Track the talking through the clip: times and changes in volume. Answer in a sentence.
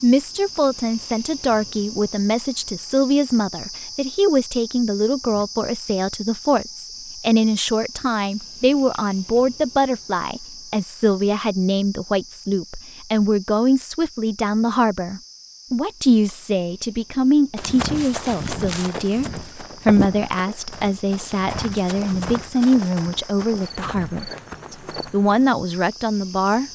The talking can be heard from 0.0 to 26.6 s, at a steady volume.